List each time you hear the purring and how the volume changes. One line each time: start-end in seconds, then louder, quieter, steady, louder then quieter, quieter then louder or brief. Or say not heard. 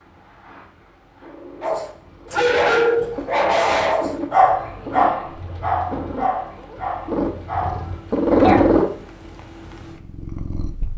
0.0-10.9 louder.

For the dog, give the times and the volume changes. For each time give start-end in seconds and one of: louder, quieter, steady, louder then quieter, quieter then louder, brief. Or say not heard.
1.6-8.6 quieter.